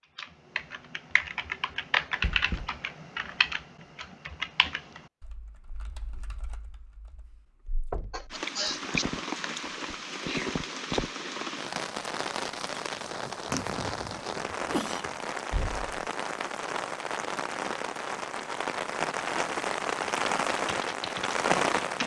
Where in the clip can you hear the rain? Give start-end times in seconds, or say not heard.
8.3-22.0.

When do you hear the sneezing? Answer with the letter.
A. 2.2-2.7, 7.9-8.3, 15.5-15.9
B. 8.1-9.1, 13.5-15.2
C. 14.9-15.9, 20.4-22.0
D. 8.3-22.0
B.